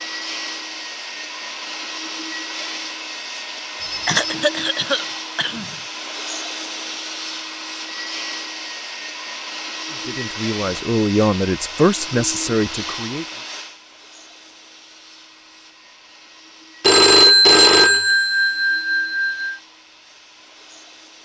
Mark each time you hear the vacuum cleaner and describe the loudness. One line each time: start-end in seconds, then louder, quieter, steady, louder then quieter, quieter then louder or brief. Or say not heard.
0.0-21.1 quieter.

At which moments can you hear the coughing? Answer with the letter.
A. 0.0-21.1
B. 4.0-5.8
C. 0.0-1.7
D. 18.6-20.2
B.